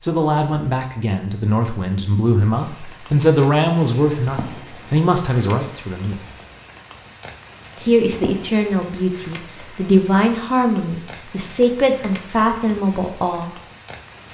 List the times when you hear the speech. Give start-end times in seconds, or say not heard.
0.0-6.2, 7.8-13.5.